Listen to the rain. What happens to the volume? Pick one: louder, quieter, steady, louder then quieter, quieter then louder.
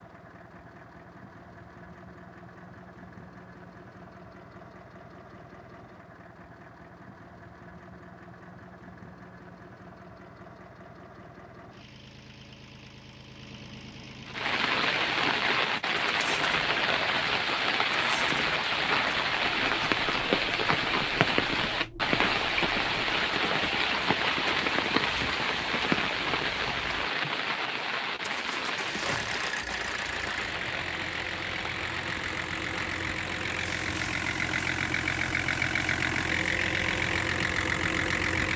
quieter.